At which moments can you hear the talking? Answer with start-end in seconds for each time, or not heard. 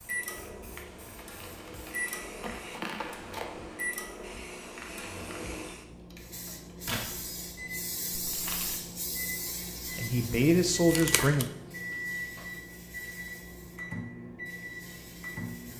9.9-11.4.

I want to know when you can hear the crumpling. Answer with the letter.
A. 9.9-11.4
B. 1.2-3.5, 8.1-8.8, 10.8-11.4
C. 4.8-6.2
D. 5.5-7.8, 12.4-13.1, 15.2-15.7
B.